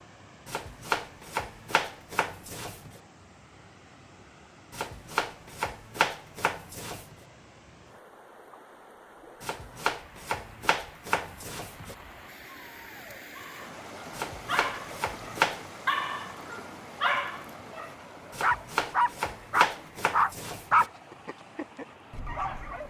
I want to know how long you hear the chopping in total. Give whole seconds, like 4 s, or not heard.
12 s.